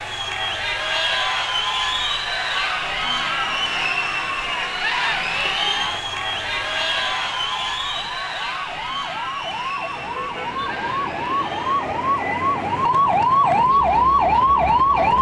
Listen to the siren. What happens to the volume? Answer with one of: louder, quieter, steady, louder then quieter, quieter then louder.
louder.